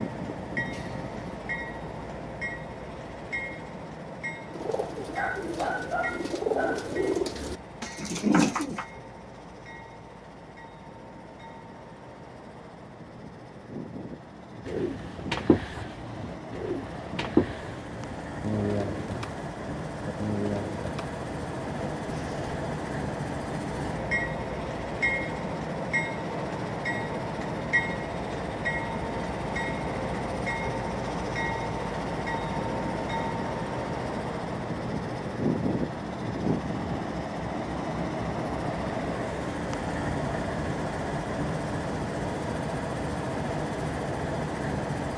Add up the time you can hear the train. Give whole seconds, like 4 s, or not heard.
45 s.